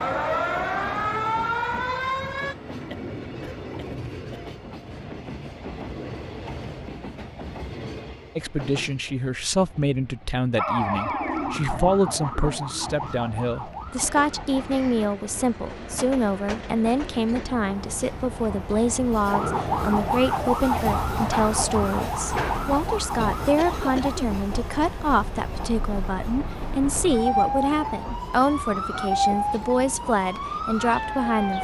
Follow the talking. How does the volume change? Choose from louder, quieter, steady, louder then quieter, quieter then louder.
steady.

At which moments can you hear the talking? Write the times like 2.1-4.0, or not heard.
8.3-31.5.